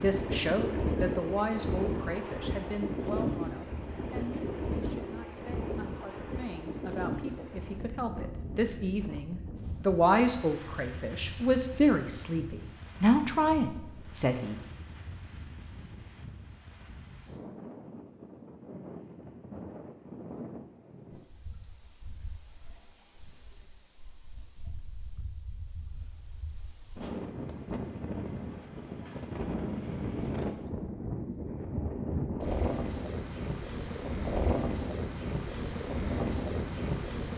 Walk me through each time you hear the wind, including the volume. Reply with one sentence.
You can hear the wind from 0.0 to 37.3 s, getting quieter then louder.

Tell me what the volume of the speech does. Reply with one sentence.
The volume of the speech goes down, then up.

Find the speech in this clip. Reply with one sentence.
You can hear the speech from 0.0 to 14.6 s.